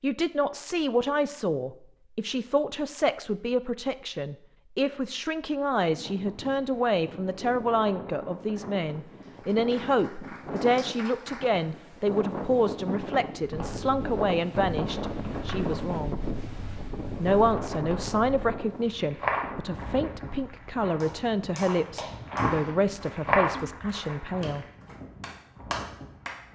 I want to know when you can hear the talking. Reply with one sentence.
You can hear the talking from 0.0 to 16.2 s and from 17.2 to 24.6 s.